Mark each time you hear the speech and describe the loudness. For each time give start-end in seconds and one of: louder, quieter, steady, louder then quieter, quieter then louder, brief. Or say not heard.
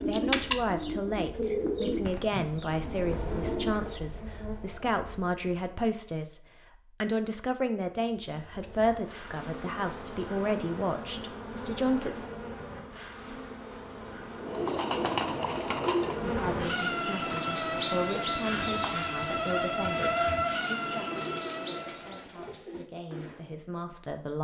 0.1-12.3 steady
16.2-24.3 quieter then louder.